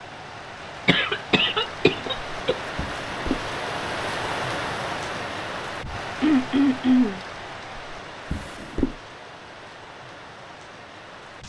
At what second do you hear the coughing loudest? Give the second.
7 s.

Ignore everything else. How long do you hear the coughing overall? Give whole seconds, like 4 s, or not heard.
3 s.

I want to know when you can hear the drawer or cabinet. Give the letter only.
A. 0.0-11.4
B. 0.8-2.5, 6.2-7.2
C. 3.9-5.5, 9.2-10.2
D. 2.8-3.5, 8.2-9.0
D.